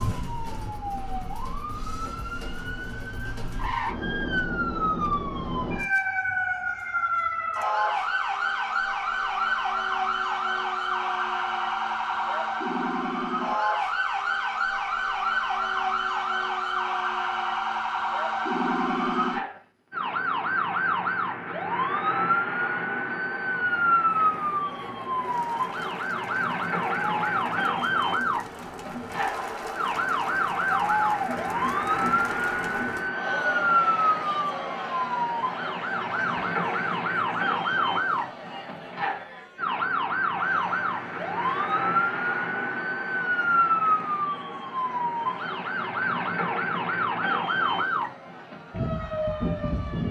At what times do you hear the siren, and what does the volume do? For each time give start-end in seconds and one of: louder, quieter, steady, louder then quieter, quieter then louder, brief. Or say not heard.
0.0-50.0 steady.